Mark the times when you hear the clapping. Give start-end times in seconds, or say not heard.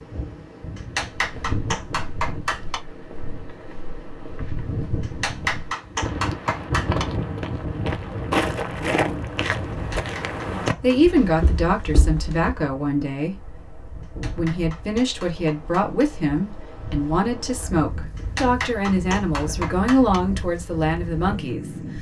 0.8-2.8, 5.0-7.0, 9.7-11.2, 14.0-16.1, 18.1-20.2.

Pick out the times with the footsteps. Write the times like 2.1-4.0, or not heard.
1.1-12.6.